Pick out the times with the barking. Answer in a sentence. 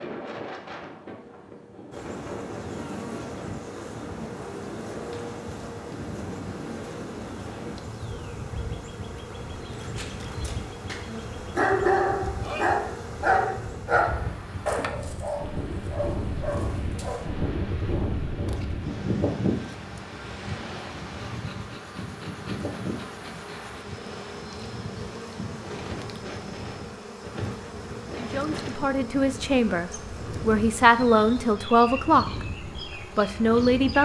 The barking can be heard from 9.6 to 17.3 s.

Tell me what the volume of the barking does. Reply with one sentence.
The loudness of the barking goes up, then down.